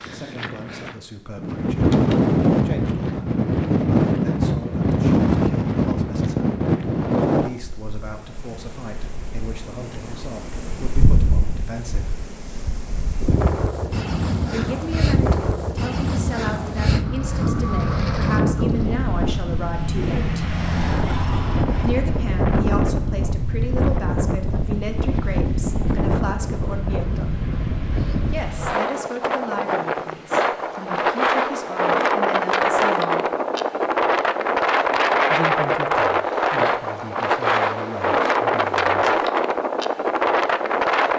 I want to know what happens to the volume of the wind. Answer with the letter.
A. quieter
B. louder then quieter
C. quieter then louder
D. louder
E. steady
C.